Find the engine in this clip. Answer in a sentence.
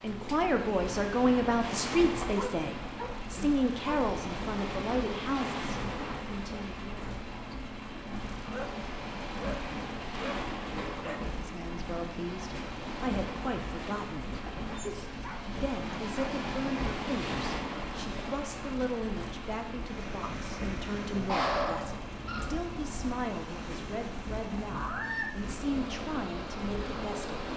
The engine can be heard from 0.0 to 27.5 s.